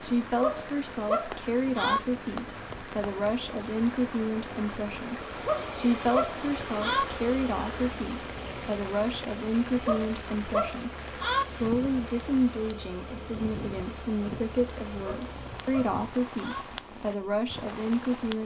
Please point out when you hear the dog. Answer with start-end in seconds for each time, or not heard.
0.4-2.0, 5.5-7.0, 9.8-11.4, 15.2-16.6.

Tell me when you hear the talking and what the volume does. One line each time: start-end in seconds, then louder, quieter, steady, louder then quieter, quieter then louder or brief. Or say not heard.
0.0-18.4 steady.